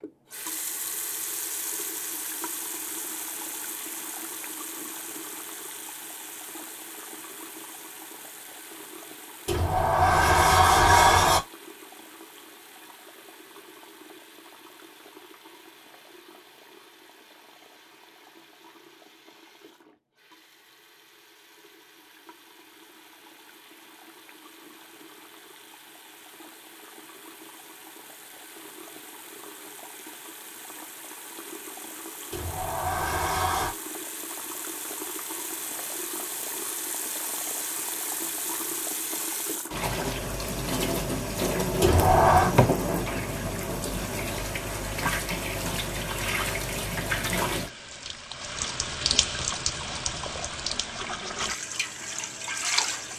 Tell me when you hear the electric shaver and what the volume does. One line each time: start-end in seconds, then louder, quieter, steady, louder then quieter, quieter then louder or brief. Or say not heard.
not heard.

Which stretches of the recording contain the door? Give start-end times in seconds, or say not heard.
9.4-11.4, 32.3-33.8, 41.8-42.5.